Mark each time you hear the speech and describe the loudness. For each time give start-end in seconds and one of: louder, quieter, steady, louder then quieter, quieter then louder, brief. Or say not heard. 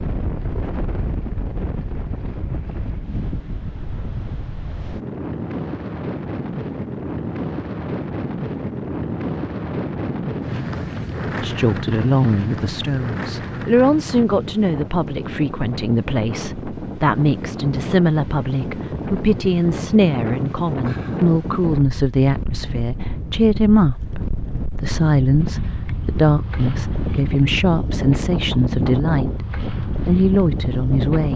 11.3-29.4 steady
30.1-31.3 brief.